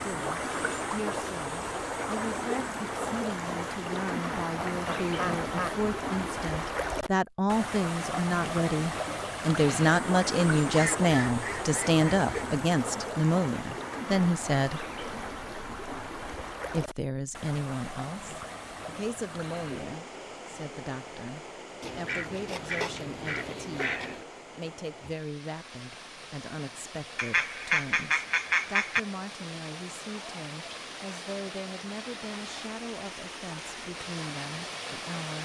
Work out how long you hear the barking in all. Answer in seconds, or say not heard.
not heard.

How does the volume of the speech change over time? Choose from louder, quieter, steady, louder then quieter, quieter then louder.
louder then quieter.